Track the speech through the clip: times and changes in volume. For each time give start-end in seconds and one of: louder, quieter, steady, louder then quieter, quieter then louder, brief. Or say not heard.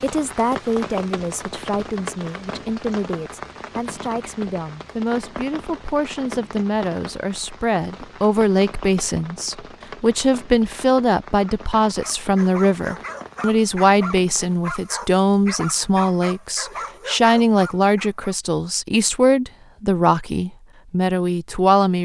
0.0-21.9 louder.